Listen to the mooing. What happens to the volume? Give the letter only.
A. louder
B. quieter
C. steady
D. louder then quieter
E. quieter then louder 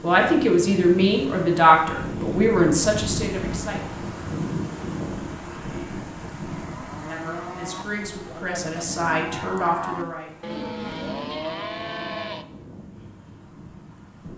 A.